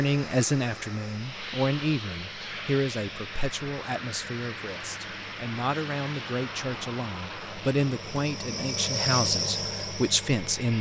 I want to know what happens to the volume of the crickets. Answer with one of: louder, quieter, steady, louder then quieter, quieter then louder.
louder.